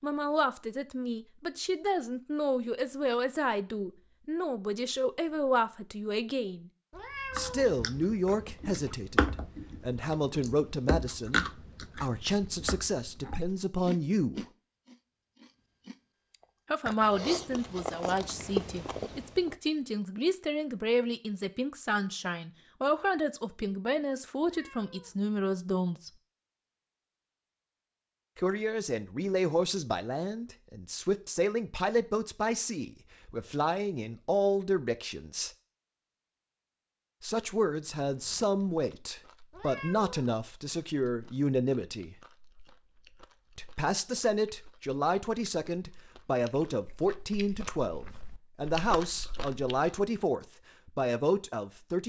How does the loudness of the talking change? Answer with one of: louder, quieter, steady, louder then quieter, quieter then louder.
steady.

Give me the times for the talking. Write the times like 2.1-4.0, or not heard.
0.0-6.7, 7.3-14.4, 16.7-26.1, 28.4-35.5, 37.2-42.1, 43.5-52.0.